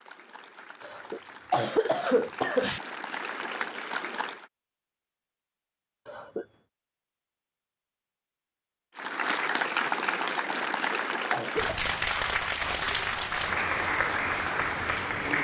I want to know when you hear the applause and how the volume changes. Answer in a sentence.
You can hear the applause from 0.0 to 4.5 s, getting louder; and from 8.9 to 15.4 s, at a steady volume.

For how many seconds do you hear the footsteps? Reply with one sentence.
The footsteps can't be heard in this clip.